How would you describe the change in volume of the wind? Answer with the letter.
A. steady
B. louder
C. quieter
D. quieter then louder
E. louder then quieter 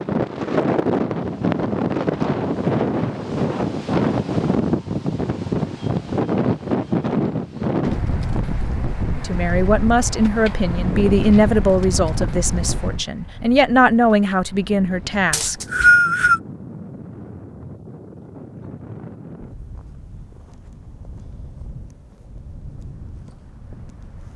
C.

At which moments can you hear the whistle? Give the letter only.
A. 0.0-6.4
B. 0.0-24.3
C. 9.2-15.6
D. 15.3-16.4
D.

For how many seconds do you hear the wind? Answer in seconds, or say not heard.
24 s.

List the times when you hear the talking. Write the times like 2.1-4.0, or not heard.
9.2-15.6.